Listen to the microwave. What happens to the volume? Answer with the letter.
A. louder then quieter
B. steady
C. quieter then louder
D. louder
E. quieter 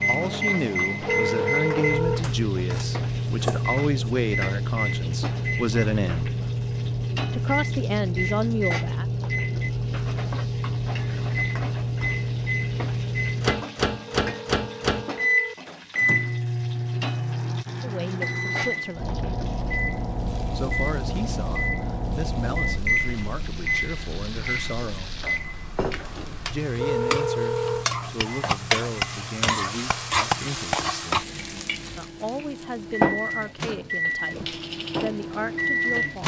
E.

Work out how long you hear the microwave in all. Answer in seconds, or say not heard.
36 s.